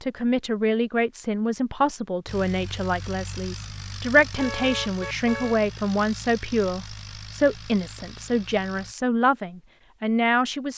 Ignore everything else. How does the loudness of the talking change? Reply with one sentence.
The loudness of the talking stays about the same.